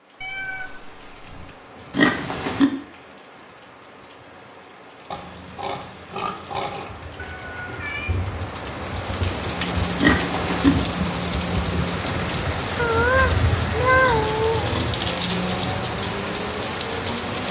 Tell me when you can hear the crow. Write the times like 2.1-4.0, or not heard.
not heard.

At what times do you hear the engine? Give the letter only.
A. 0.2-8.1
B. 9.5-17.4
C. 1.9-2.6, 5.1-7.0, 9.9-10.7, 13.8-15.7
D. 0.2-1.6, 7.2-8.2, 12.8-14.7
B.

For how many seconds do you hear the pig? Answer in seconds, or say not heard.
5 s.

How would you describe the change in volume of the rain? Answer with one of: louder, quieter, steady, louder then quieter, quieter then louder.
louder.